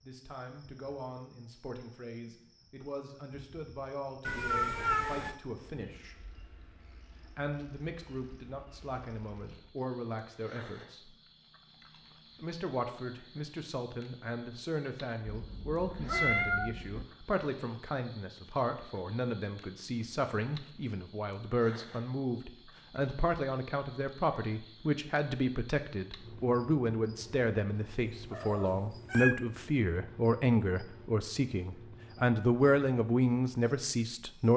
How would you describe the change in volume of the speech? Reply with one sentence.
The volume of the speech goes up.